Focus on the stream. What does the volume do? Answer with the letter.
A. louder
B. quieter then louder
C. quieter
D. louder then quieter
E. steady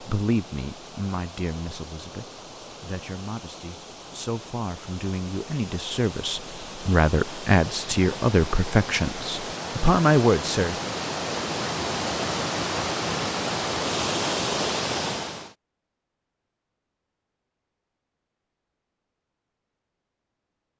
A.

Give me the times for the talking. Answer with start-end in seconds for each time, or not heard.
0.0-10.8.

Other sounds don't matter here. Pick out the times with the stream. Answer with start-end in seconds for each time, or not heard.
0.0-15.6.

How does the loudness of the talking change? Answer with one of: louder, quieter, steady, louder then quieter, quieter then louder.
louder.